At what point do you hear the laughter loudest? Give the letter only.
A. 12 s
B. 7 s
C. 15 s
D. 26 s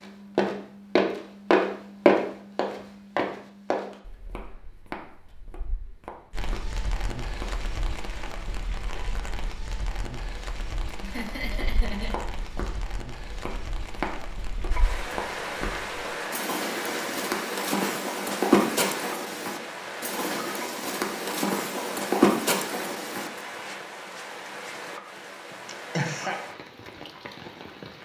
D.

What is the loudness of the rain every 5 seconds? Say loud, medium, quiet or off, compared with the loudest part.
off, medium, medium, loud, loud, medium.